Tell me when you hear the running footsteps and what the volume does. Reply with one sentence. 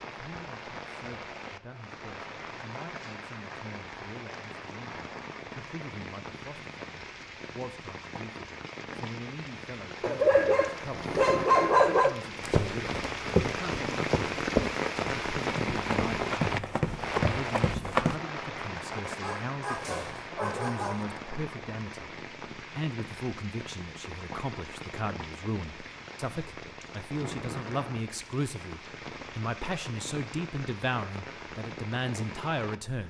You can hear the running footsteps from 12.4 to 18.1 s, getting quieter then louder.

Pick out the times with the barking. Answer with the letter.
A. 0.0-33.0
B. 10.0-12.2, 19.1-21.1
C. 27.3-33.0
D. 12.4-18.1
B.